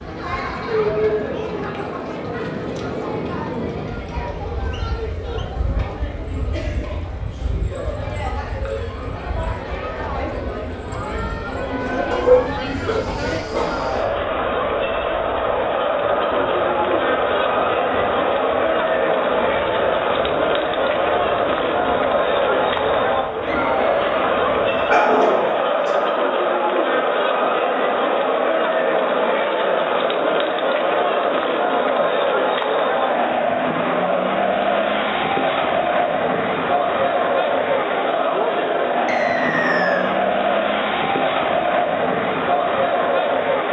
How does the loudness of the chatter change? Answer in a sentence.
The loudness of the chatter goes up.